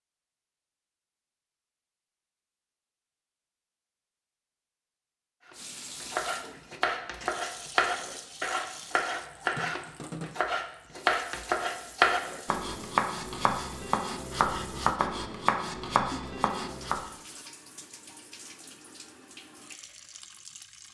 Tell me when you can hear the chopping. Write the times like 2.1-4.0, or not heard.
5.5-17.1.